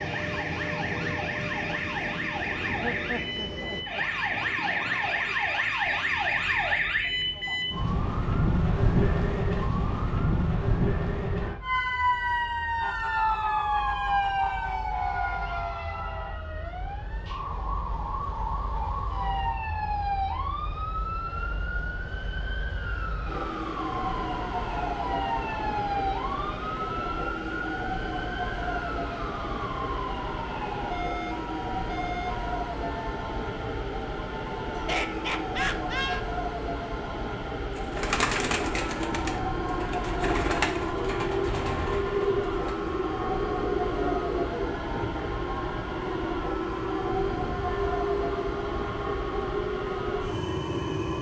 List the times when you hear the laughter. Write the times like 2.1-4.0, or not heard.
2.6-4.0, 34.8-36.2.